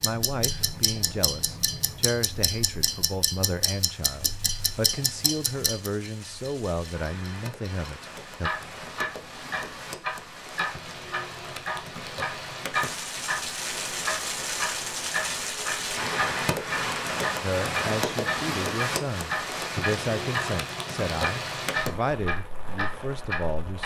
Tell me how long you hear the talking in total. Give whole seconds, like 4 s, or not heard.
15 s.